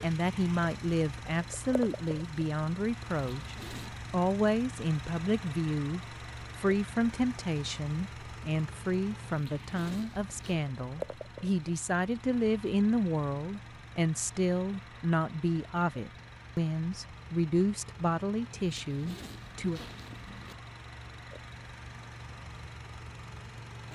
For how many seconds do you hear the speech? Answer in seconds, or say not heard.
20 s.